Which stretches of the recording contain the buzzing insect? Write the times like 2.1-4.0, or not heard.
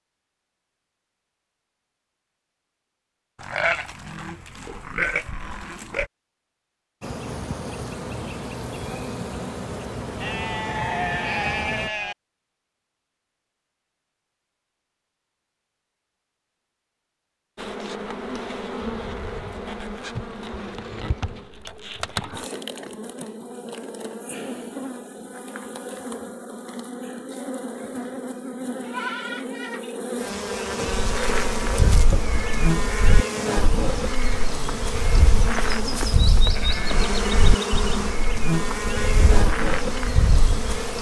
7.0-11.9, 17.6-40.9.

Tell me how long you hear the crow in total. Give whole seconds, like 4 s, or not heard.
10 s.